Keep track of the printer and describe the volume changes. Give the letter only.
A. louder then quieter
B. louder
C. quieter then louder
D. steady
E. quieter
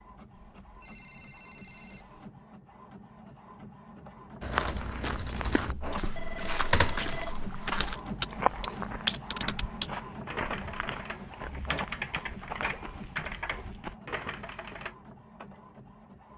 A.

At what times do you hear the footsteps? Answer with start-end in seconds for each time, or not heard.
4.4-13.9.